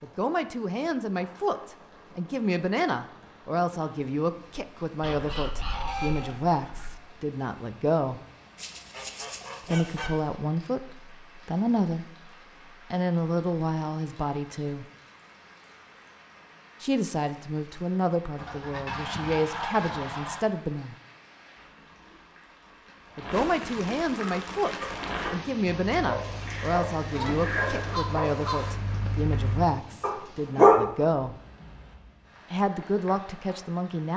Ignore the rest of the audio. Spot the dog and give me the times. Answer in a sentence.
The dog can be heard from 24.1 to 30.9 s.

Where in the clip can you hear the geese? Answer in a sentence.
The geese can be heard from 5.0 to 7.0 s, from 8.6 to 10.1 s, from 18.4 to 20.4 s and from 27.1 to 28.8 s.